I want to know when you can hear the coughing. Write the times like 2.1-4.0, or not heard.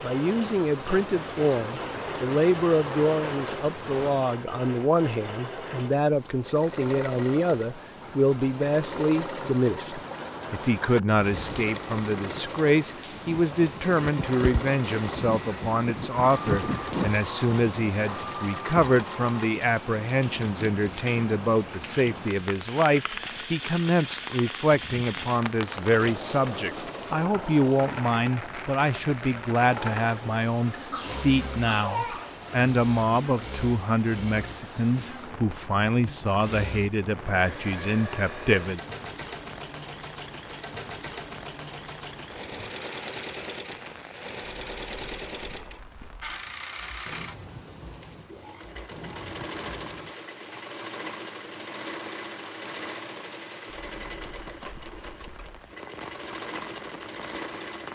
30.8-32.4.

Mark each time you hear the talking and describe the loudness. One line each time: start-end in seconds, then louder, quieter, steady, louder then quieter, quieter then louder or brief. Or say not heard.
0.0-38.8 steady.